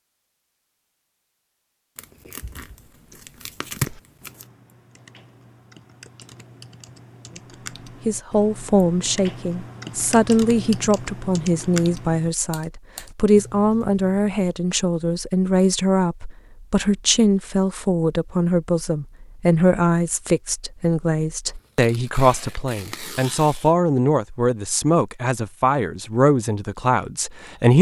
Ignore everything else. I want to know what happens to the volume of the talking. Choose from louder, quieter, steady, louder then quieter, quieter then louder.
steady.